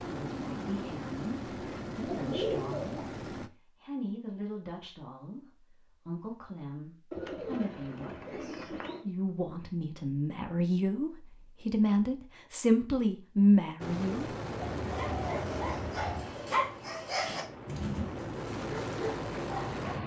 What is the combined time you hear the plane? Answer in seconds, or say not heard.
10 s.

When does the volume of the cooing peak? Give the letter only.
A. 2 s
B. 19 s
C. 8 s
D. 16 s
A.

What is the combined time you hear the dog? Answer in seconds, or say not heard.
5 s.